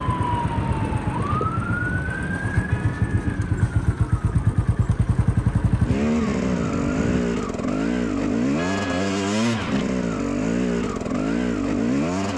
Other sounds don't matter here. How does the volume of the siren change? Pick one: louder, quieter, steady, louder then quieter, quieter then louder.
quieter then louder.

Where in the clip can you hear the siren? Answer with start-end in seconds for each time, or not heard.
0.0-7.3.